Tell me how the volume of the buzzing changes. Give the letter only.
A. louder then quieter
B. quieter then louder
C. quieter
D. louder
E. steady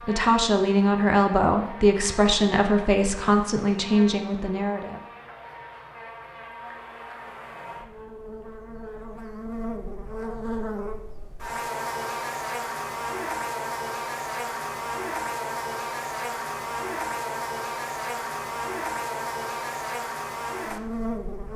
D.